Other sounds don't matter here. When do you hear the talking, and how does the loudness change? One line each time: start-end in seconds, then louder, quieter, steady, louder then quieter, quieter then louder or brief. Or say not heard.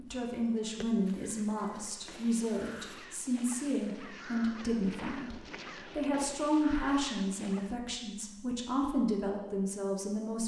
0.0-10.4 steady.